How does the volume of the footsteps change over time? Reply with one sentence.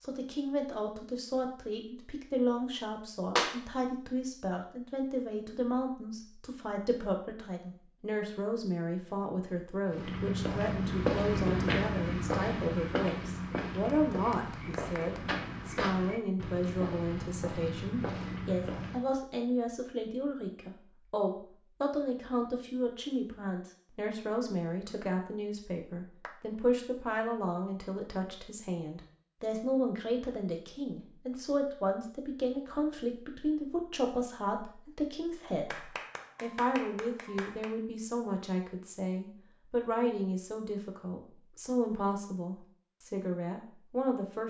The loudness of the footsteps goes down.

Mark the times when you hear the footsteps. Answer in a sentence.
The footsteps can be heard from 9.8 to 19.1 s.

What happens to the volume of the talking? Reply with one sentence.
The loudness of the talking stays about the same.